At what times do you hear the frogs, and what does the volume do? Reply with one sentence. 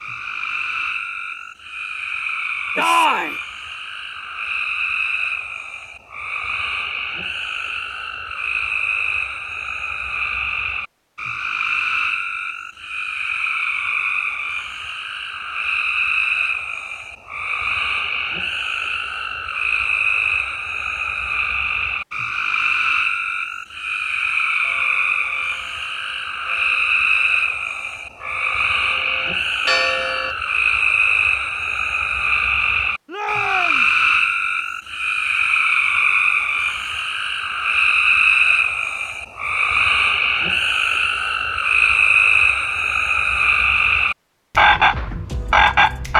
You can hear the frogs from 0.0 to 46.1 s, getting louder.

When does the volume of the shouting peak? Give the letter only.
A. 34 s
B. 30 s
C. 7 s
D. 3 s
D.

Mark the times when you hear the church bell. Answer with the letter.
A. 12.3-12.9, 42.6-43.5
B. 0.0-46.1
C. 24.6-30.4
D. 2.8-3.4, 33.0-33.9
C.